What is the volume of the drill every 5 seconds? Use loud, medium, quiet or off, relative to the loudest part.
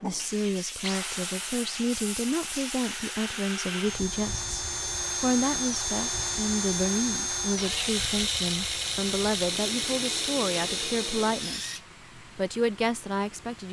medium, loud, loud.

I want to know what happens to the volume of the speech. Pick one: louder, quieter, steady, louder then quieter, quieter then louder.
steady.